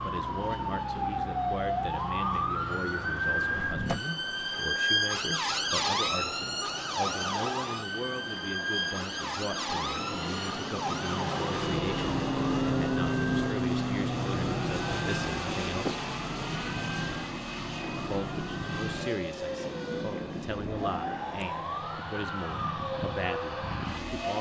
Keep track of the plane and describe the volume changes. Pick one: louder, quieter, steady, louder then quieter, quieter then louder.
louder then quieter.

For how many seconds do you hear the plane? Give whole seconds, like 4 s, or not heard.
24 s.